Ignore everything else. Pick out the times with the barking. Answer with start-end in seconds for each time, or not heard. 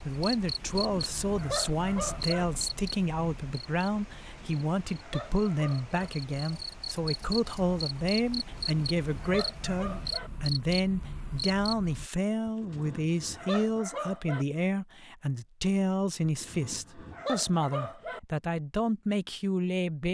0.5-2.5, 4.2-6.0, 8.4-10.3, 12.4-14.4, 16.2-18.2.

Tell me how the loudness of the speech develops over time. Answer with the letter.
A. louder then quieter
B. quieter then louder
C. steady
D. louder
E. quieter
C.